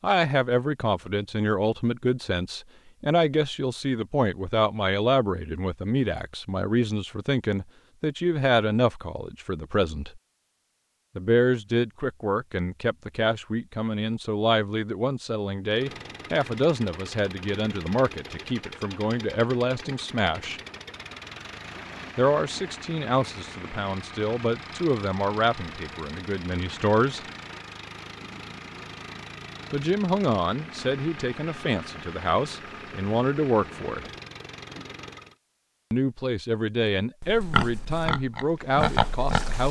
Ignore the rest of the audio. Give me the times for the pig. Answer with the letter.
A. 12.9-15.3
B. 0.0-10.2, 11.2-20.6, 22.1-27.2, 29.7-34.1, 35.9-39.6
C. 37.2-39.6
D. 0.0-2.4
C.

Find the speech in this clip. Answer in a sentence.
You can hear the speech from 0.0 to 10.2 s, from 11.2 to 20.6 s, from 22.1 to 27.2 s, from 29.7 to 34.1 s and from 35.9 to 39.6 s.